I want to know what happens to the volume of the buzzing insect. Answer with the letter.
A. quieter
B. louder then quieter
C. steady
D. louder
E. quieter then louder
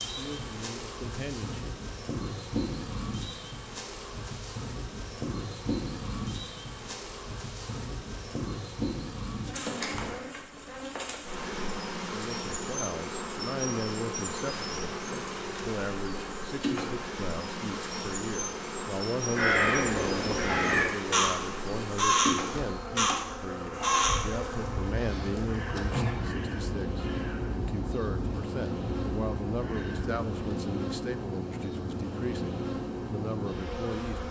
C.